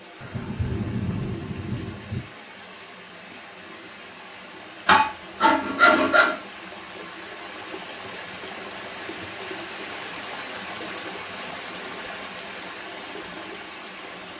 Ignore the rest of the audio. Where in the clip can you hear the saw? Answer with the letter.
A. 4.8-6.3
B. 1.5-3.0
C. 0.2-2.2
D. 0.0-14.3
A.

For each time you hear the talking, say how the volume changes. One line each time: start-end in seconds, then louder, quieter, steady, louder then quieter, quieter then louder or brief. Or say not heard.
not heard.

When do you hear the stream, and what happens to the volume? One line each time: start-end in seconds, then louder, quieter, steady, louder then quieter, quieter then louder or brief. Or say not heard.
0.0-14.3 louder.